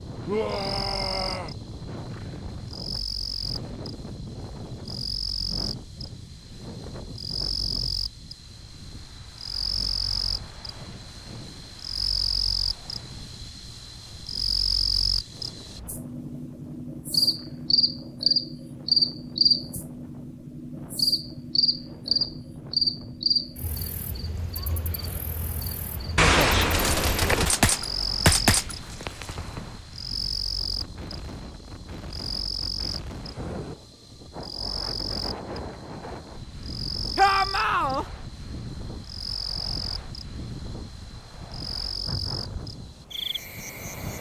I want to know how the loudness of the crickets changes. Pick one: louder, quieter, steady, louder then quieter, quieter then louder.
louder then quieter.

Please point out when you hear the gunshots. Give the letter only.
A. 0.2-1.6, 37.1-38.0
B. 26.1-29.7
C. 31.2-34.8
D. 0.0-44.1
B.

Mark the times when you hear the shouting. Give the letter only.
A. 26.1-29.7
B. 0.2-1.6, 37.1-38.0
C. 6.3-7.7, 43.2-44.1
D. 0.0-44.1
B.